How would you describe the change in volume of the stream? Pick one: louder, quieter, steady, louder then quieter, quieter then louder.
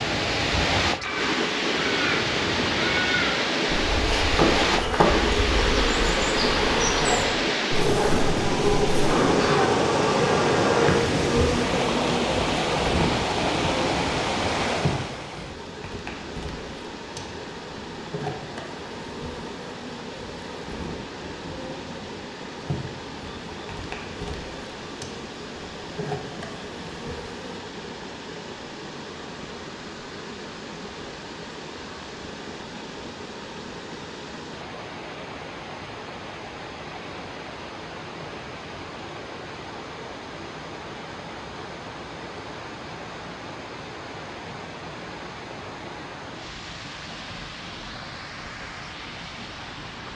quieter.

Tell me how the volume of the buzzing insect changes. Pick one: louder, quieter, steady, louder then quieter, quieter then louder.
quieter.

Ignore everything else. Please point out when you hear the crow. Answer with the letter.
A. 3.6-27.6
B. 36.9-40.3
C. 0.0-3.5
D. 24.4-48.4
C.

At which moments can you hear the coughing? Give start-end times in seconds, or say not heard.
not heard.